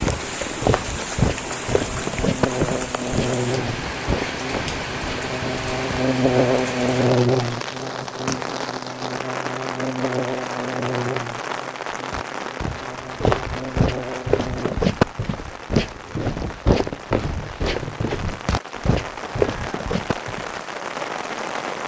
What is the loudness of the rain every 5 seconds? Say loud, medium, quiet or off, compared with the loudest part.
loud, loud, loud, medium, loud.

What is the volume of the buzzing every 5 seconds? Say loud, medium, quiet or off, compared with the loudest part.
medium, loud, medium, off, off.